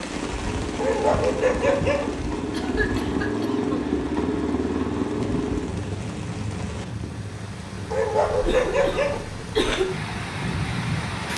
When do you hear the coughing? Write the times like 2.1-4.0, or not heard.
2.5-3.9, 8.2-9.8.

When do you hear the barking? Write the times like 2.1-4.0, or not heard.
0.8-2.1, 7.9-9.2.